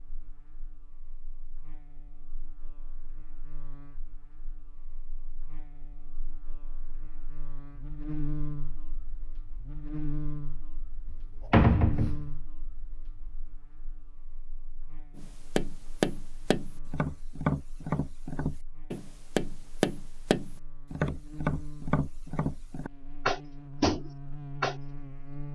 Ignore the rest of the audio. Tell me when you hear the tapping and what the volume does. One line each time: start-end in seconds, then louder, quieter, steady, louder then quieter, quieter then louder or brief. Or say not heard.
15.2-24.8 steady.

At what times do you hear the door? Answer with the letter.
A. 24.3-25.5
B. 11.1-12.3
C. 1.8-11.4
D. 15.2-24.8
B.